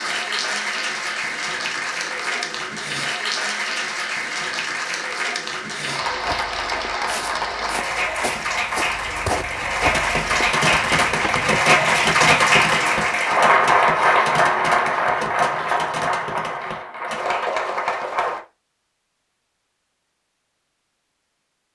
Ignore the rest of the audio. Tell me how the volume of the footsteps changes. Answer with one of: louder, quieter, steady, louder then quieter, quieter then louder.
louder then quieter.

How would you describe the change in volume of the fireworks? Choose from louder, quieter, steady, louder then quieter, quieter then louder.
quieter.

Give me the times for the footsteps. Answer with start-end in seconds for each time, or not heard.
6.0-11.5.